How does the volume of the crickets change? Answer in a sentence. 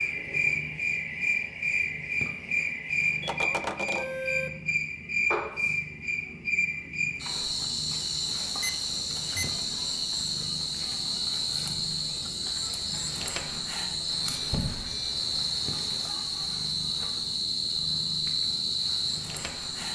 The loudness of the crickets stays about the same.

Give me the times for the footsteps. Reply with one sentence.
The footsteps can't be heard in this clip.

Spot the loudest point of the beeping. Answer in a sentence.
The volume of the beeping peaks at 4 seconds.